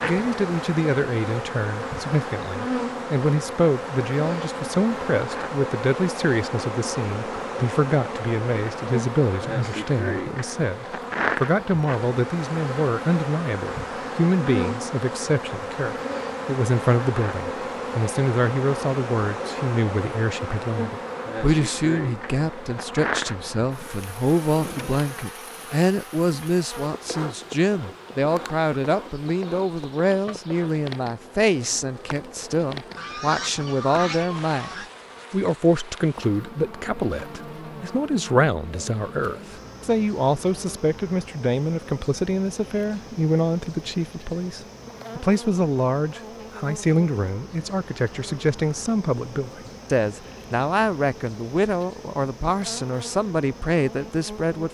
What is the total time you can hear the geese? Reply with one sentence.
You can hear the geese for 2 seconds altogether.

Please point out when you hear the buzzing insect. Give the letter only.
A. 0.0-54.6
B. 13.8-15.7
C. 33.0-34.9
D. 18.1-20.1
A.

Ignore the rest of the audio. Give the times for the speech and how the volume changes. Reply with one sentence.
You can hear the speech from 0.0 to 34.7 s, at a steady volume; and from 35.3 to 54.6 s, at a steady volume.